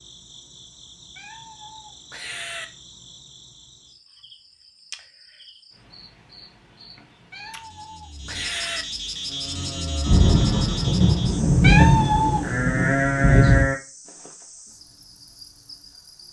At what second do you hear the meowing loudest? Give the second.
12 s.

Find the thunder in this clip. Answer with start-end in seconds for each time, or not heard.
10.1-13.7.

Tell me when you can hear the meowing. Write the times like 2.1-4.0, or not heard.
1.1-2.6, 7.3-8.8, 11.6-12.5.